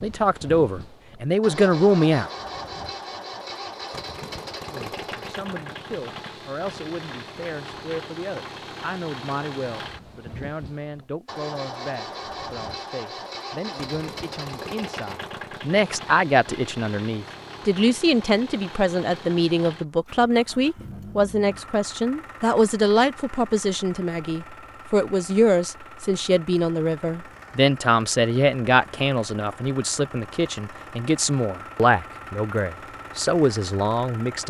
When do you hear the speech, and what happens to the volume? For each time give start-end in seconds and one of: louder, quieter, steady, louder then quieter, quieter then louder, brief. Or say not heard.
0.0-2.3 brief
4.7-34.4 louder.